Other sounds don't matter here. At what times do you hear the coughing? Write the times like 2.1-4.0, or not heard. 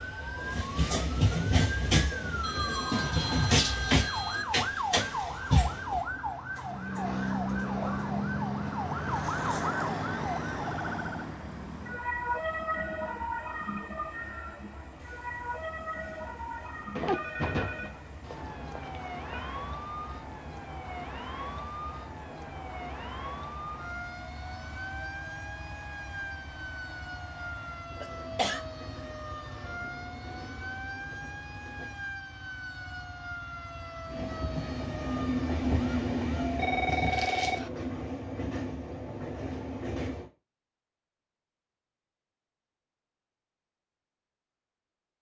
28.0-28.6.